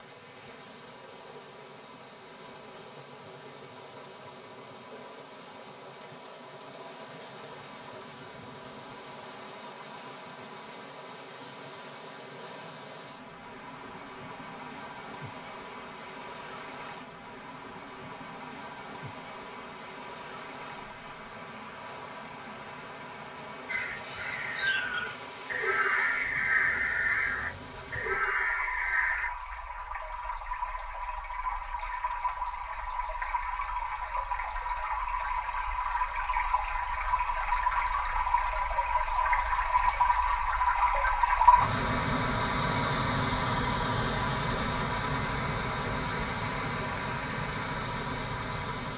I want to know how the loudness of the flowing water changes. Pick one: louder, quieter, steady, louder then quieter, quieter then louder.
louder.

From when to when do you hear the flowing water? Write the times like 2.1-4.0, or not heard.
0.0-48.9.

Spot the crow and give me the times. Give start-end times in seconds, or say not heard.
23.6-29.3.